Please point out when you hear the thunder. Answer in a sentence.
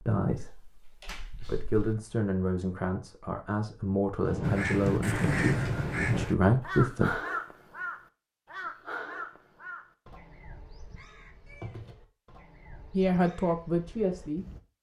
The thunder can be heard from 4.2 to 6.2 s.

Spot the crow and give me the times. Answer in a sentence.
The crow can be heard from 4.4 to 14.6 s.